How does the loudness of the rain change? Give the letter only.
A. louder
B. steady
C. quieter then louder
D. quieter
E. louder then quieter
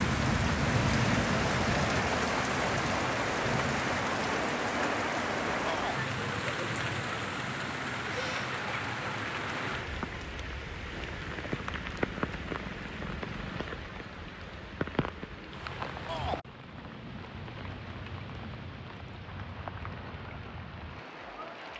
D.